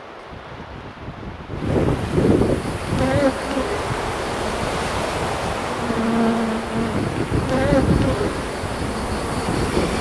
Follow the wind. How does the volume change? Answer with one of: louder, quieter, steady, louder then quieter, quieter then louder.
steady.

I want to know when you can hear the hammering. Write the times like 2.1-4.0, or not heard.
not heard.